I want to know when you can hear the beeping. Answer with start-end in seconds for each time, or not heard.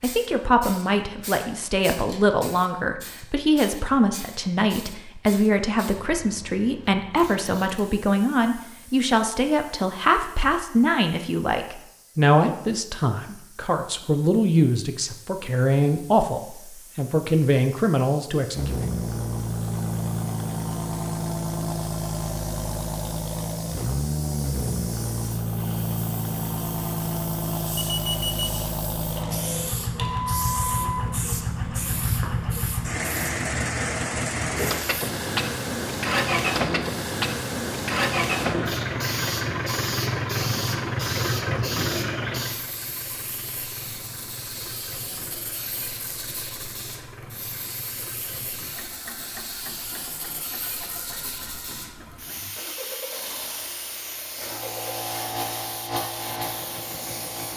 27.8-28.6.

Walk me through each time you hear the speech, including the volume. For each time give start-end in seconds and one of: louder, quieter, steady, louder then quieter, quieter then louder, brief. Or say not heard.
0.0-18.8 steady.